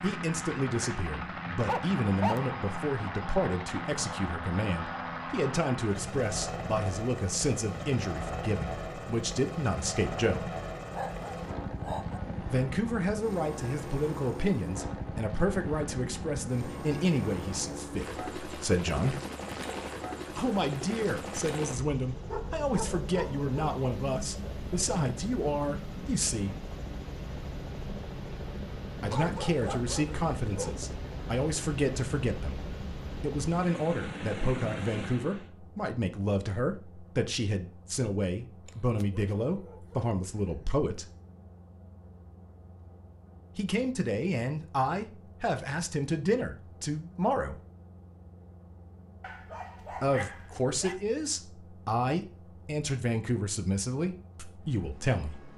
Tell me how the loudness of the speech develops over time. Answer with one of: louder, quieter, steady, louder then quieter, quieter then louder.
steady.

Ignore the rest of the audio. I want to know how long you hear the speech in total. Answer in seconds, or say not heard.
45 s.